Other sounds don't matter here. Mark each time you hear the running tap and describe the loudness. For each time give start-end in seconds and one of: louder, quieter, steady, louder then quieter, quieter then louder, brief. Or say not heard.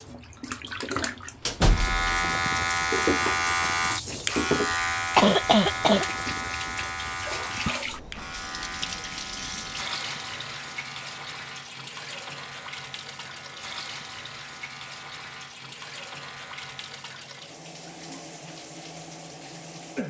0.0-20.0 quieter.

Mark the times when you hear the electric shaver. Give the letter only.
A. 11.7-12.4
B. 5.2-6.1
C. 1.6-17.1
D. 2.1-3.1
C.